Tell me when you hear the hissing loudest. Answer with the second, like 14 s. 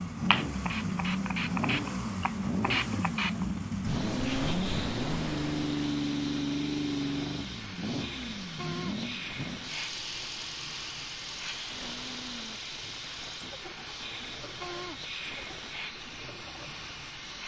3 s.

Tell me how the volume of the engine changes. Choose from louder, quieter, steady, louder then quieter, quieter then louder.
quieter.